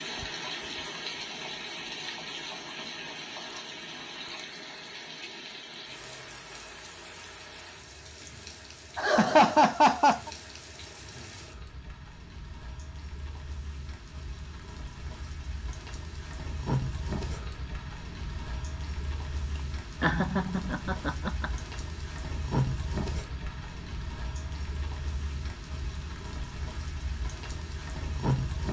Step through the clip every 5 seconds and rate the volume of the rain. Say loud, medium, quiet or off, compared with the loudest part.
loud, medium, medium, loud, loud, loud.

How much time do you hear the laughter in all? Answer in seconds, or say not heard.
3 s.